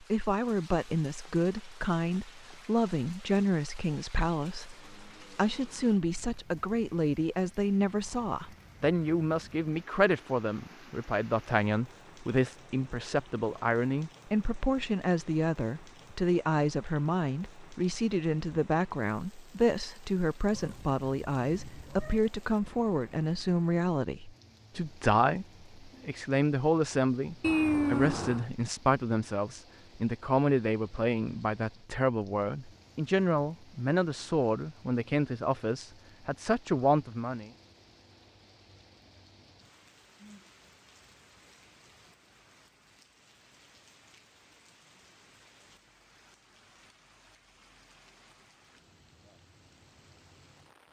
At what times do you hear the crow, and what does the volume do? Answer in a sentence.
The crow can't be heard in this clip.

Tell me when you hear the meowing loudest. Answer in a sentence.
The volume of the meowing peaks at 28 seconds.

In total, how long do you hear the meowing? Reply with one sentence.
You can hear the meowing for 3 seconds altogether.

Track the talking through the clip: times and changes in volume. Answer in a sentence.
You can hear the talking from 0.0 to 37.5 s, at a steady volume.